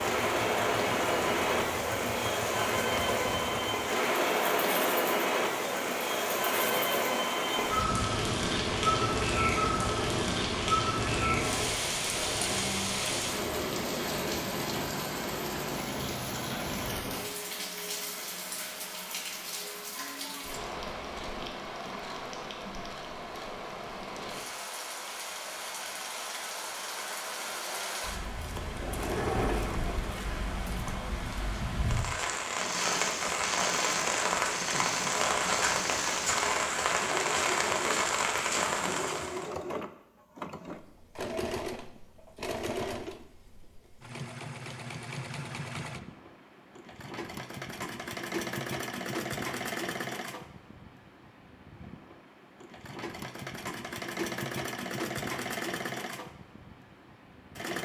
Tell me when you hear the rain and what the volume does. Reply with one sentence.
The rain can be heard from 0.0 to 39.5 s, getting quieter then louder.